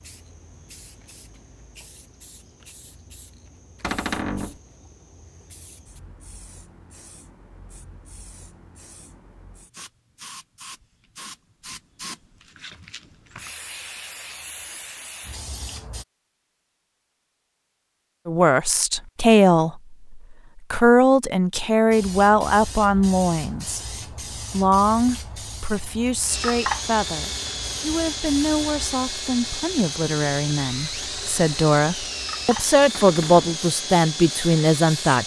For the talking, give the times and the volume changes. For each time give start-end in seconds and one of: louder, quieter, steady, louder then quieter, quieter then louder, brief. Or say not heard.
18.2-23.8 quieter then louder
24.5-35.2 louder.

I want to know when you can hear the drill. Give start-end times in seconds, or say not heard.
26.2-35.2.